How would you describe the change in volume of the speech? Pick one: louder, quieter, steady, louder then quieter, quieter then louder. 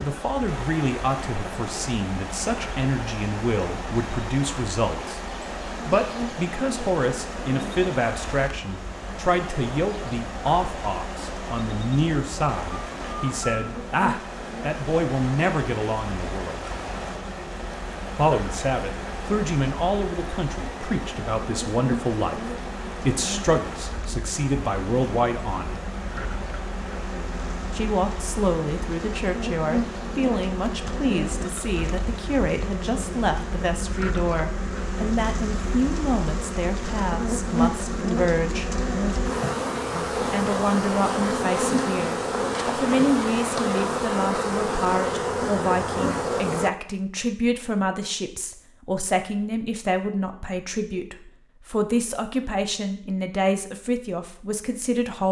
steady.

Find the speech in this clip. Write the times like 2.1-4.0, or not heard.
0.0-16.6, 18.1-25.9, 27.7-38.7, 40.0-55.2.